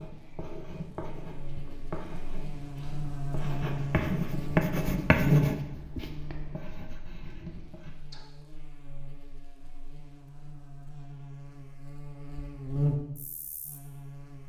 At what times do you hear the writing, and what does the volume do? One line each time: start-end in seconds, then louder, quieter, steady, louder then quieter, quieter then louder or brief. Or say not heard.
0.0-8.2 louder then quieter.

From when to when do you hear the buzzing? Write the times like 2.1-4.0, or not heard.
0.0-14.4.